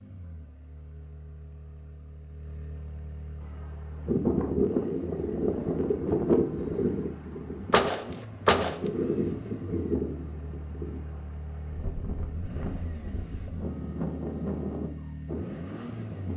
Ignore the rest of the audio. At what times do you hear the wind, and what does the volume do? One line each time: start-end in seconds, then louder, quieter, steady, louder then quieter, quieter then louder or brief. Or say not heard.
3.6-16.3 quieter then louder.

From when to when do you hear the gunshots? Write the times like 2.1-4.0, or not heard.
7.7-8.8.